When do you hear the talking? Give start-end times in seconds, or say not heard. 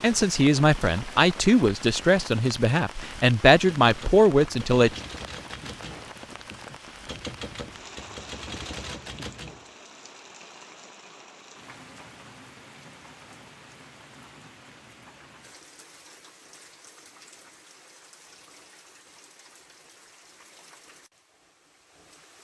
0.0-5.0.